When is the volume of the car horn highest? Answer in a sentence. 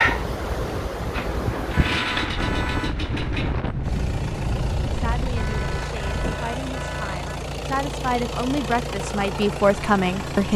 The volume of the car horn peaks at 2 seconds.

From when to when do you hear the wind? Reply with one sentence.
You can hear the wind from 0.0 to 6.4 s.